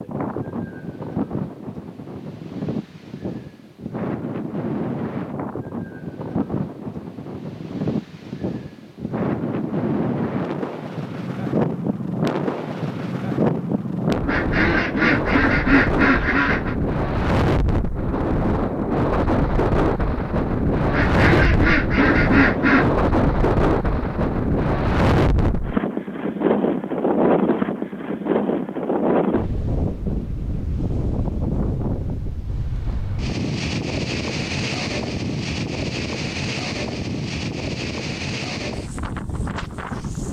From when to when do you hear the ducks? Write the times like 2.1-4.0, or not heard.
14.2-16.8, 20.9-22.9.